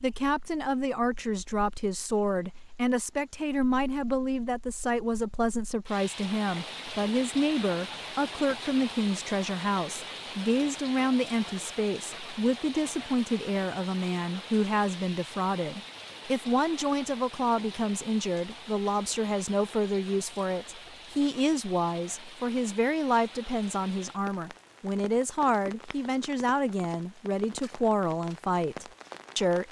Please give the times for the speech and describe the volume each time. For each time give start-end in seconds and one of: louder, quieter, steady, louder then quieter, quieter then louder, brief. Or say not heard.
0.0-29.6 steady.